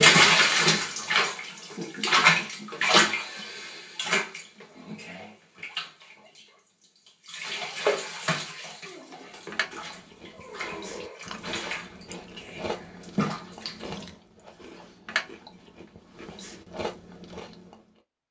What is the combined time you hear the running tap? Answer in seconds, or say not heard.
14 s.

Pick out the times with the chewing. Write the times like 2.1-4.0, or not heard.
9.2-17.8.